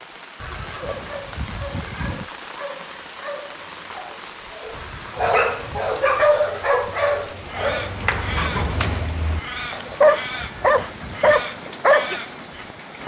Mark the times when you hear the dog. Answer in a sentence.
The dog can be heard from 0.9 to 12.2 s.